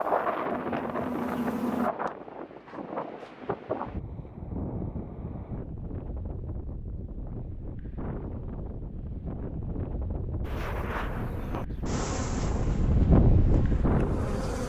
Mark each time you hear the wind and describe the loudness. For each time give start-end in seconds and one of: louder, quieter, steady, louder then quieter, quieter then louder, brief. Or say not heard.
0.0-14.6 quieter then louder.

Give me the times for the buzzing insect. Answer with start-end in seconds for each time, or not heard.
0.0-1.9, 10.4-14.6.